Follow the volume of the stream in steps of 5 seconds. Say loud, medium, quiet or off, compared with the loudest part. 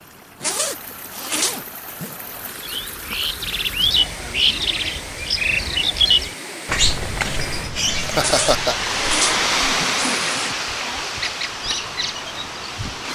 medium, loud, loud.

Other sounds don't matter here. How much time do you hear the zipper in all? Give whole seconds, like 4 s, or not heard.
4 s.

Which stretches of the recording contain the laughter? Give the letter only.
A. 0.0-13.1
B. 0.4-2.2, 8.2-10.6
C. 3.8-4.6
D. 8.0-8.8
D.